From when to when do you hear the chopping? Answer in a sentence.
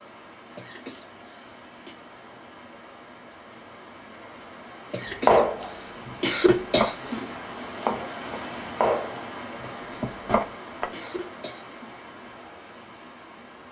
You can hear the chopping from 5.2 to 10.9 s.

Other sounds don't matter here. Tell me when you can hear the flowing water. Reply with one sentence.
You can hear the flowing water from 0.0 to 13.6 s.